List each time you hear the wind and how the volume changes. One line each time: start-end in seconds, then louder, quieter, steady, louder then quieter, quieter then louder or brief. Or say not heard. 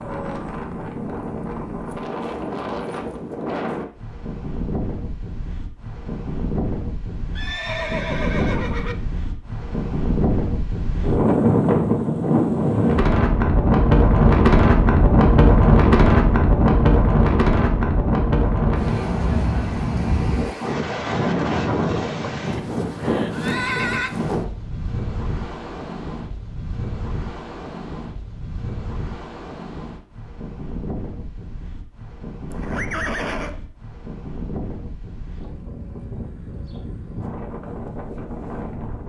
0.0-39.0 louder then quieter.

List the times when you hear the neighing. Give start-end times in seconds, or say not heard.
7.3-8.9, 22.5-24.1, 32.5-33.5.